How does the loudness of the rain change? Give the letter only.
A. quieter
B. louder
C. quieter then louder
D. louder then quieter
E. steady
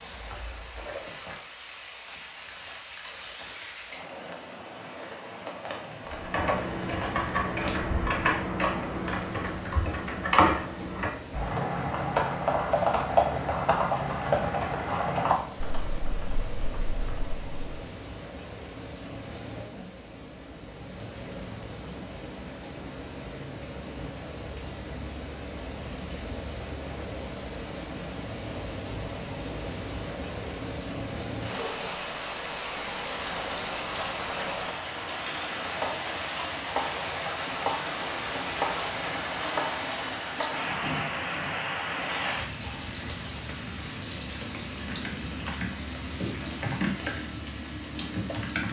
B.